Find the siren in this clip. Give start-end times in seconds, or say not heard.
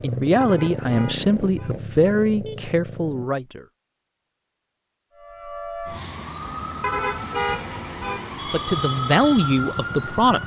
5.2-10.4.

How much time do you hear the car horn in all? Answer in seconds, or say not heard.
3 s.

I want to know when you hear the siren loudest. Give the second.
9 s.